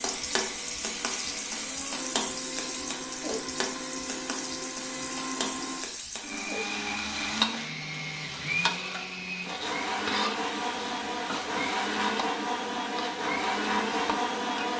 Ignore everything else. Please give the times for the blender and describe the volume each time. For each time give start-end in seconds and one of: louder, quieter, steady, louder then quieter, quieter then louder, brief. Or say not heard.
0.0-14.7 louder.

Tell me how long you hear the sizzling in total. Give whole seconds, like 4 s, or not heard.
15 s.